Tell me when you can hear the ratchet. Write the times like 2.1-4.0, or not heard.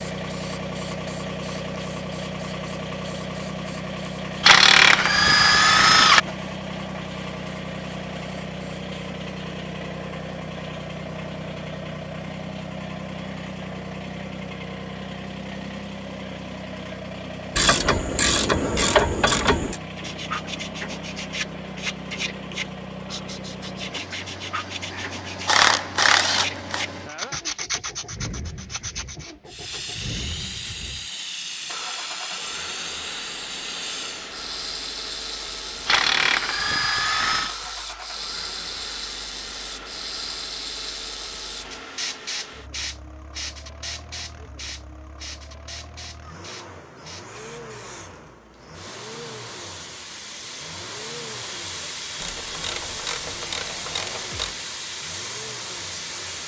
4.4-6.2, 17.6-19.8, 24.9-26.9, 35.9-37.5, 52.1-54.5.